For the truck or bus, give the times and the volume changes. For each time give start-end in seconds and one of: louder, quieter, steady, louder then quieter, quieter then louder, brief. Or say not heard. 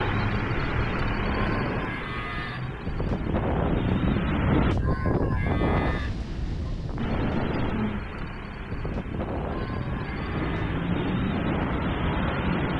0.0-4.8 quieter then louder
7.0-12.7 quieter then louder.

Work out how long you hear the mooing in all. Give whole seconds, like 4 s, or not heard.
4 s.